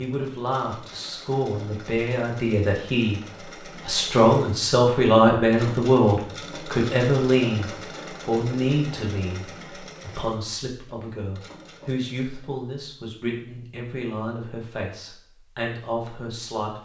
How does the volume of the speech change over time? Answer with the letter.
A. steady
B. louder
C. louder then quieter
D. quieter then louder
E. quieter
C.